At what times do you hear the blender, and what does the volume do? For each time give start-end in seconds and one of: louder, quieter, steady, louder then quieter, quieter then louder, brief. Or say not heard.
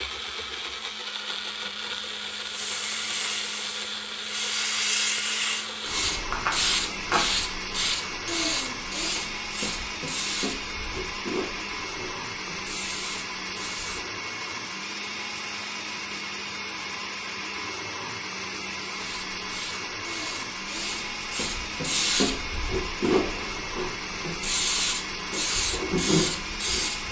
0.0-27.0 steady.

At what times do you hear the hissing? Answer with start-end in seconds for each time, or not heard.
2.1-14.2, 18.9-27.0.